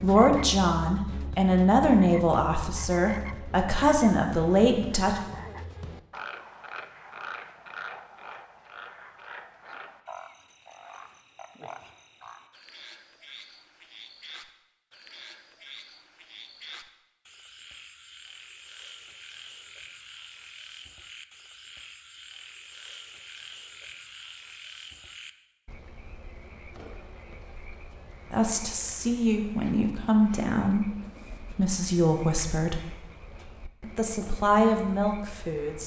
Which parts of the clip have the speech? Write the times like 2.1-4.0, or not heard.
0.0-5.2, 28.3-32.9, 33.8-35.8.